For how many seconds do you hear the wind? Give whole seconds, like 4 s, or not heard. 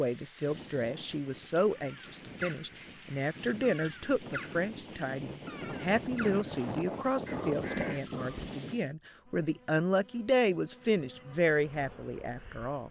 9 s.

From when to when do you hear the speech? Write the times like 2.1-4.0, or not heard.
0.0-12.8.